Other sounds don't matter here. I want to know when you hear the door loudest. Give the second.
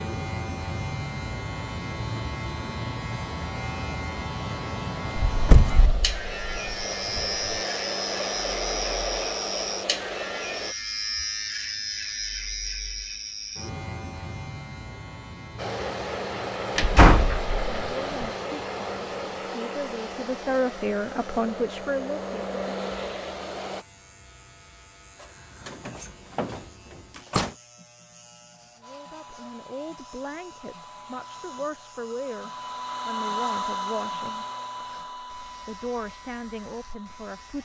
17 s.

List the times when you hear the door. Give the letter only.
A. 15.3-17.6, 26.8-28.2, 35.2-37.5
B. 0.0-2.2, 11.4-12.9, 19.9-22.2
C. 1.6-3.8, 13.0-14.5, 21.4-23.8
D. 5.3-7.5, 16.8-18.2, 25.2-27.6
D.